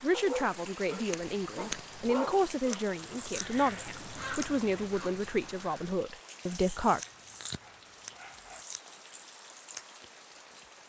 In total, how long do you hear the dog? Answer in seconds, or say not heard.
5 s.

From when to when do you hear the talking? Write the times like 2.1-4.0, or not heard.
0.0-7.0.